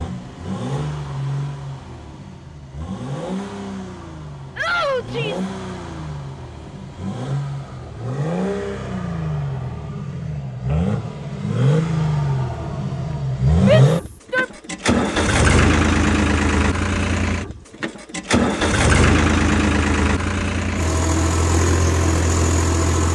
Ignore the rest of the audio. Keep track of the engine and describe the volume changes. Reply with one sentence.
The volume of the engine goes up.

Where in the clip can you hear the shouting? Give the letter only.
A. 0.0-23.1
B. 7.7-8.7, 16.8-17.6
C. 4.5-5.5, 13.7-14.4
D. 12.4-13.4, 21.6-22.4
C.